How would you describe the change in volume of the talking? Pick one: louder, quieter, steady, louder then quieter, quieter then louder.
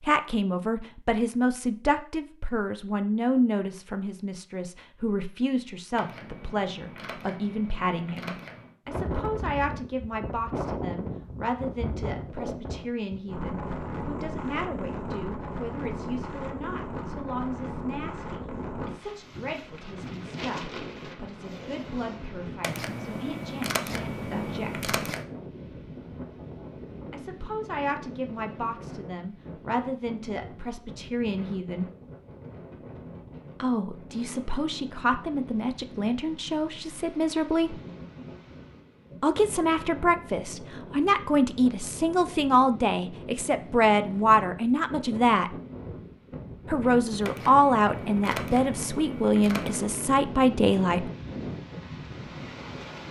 quieter then louder.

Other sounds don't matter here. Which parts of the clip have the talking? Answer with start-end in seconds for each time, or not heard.
0.0-24.9, 27.1-31.9, 33.6-37.8, 39.2-45.5, 46.6-51.0.